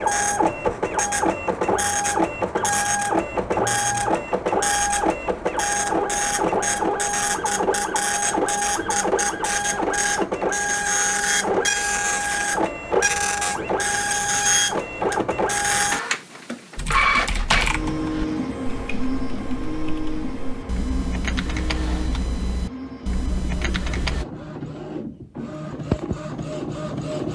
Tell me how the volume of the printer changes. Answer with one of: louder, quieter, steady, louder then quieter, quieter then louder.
quieter.